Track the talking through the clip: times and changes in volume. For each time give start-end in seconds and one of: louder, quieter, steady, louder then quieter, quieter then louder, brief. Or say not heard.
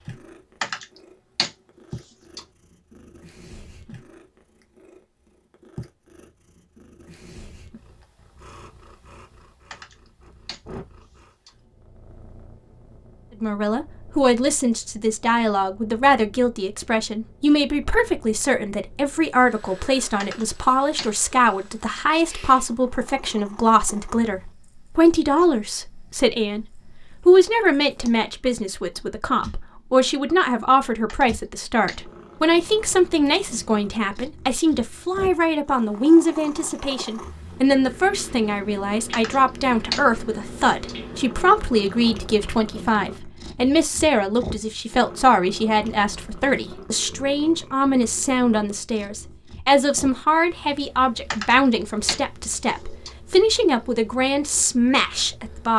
13.4-26.6 steady
27.2-55.7 steady.